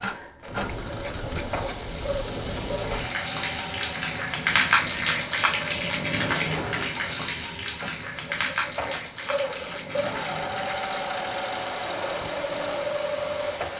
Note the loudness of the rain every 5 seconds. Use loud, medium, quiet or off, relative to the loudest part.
loud, loud, medium.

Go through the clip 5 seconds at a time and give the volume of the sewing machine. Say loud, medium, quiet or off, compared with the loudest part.
medium, medium, loud.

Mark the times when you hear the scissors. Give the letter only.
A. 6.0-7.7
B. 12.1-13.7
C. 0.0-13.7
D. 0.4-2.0
D.